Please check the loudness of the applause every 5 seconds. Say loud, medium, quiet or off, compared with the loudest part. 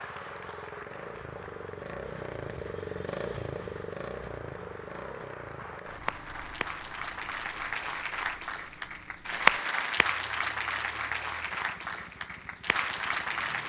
quiet, loud, loud.